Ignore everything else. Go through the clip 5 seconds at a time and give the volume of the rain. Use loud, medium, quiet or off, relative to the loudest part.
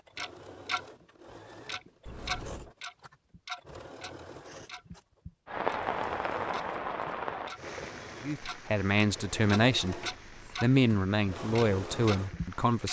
off, loud, quiet.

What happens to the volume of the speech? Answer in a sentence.
The loudness of the speech goes up, then down.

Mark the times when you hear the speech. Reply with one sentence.
The speech can be heard from 8.2 to 12.8 s.